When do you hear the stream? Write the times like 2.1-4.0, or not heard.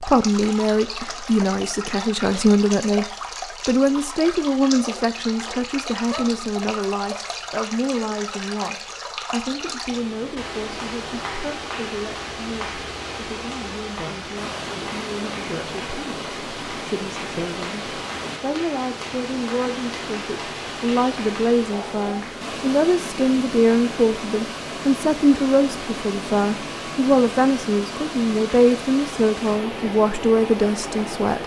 0.0-31.4.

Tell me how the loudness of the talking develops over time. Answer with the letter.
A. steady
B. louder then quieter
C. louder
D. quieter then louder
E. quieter
D.